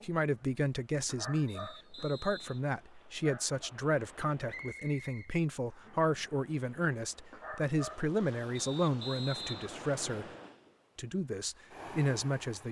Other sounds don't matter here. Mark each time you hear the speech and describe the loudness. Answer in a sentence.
You can hear the speech from 0.0 to 10.2 s, at a steady volume; and briefly from 10.9 to 12.6 s.